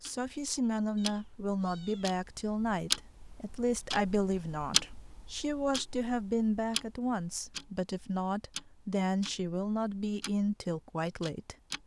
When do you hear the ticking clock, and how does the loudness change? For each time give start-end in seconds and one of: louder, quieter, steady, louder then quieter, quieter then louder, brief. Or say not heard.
0.0-11.8 louder then quieter.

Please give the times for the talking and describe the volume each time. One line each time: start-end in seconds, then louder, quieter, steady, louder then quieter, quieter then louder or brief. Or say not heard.
0.0-11.6 steady.